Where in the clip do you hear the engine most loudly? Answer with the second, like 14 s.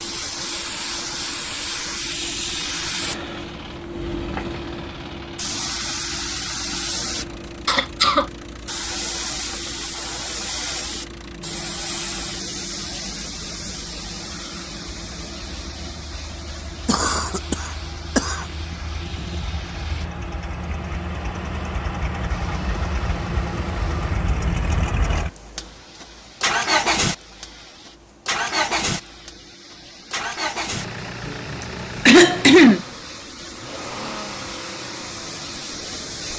27 s.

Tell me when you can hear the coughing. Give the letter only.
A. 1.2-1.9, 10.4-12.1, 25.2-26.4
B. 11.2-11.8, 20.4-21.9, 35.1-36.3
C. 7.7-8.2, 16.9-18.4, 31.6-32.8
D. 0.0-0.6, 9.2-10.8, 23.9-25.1
C.